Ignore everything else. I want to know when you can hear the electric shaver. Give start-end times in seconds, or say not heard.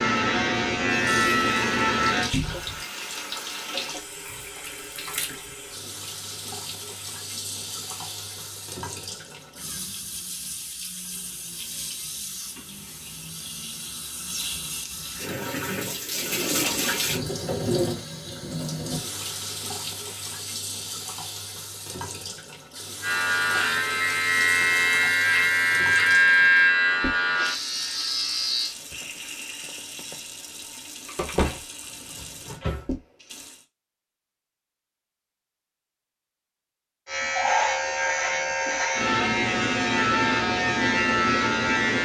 0.0-2.3, 23.0-28.8, 37.0-41.9.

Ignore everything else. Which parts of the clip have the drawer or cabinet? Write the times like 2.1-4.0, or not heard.
2.3-2.9, 16.1-17.1, 31.4-32.9.